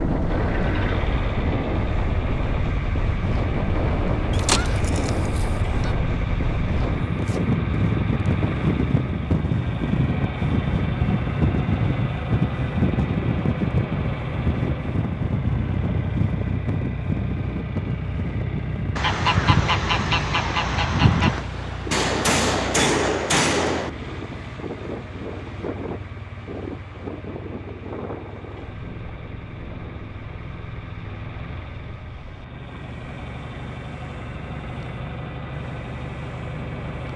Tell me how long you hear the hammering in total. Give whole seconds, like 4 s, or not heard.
2 s.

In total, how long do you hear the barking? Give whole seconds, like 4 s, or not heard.
not heard.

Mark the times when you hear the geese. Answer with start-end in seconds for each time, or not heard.
4.3-5.9, 18.9-21.4.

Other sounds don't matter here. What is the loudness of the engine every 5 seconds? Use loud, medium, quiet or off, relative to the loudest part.
loud, loud, loud, loud, medium, medium, medium, loud.